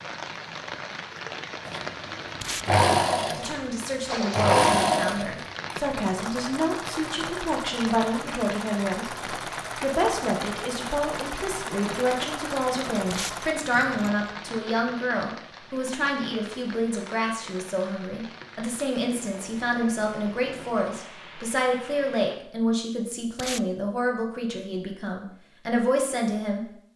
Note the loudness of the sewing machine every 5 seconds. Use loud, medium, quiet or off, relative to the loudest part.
loud, quiet, quiet, off, off, off.